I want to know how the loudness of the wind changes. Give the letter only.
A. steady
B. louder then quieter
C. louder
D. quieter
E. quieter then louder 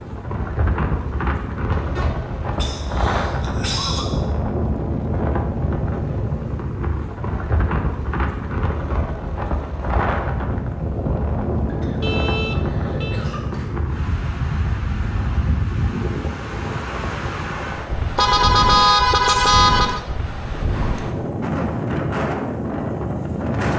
A.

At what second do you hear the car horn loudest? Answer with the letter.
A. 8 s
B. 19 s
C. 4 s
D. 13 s
B.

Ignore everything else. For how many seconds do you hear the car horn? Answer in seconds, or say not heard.
4 s.